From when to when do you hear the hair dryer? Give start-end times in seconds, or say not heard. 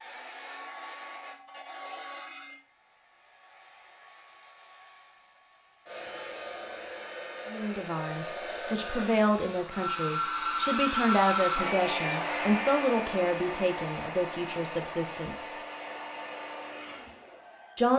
0.0-17.9.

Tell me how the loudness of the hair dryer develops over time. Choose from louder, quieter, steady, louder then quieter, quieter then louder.
louder then quieter.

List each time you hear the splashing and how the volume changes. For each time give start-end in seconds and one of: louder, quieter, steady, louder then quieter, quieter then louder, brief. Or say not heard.
not heard.